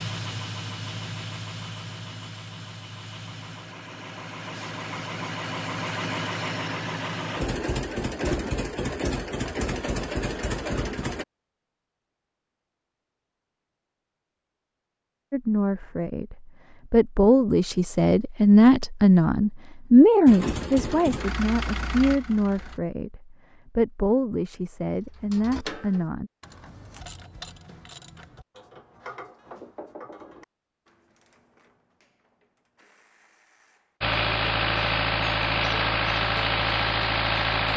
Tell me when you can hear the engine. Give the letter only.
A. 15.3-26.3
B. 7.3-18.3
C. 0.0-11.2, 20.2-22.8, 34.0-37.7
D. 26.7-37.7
C.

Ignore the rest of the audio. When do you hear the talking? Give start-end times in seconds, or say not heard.
15.3-26.3.